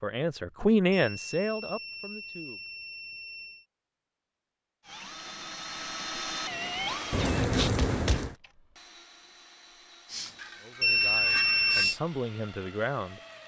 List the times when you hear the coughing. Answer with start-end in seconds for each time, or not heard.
7.1-8.3.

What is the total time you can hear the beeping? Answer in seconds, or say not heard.
4 s.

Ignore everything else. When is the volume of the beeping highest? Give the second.
11 s.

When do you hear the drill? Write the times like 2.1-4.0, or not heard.
4.8-13.4.